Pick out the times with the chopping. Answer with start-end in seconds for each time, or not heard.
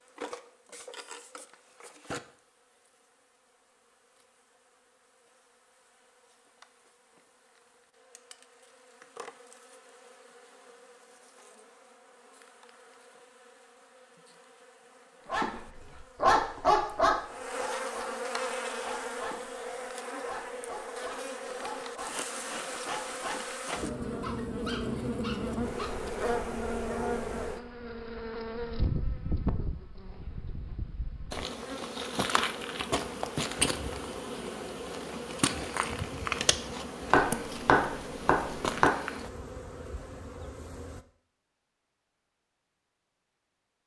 37.1-39.0.